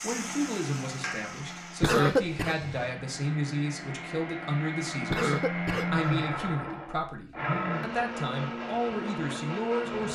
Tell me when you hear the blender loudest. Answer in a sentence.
The loudest moment of the blender is at 6 seconds.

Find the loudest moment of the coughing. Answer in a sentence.
The loudest moment of the coughing is at 2 seconds.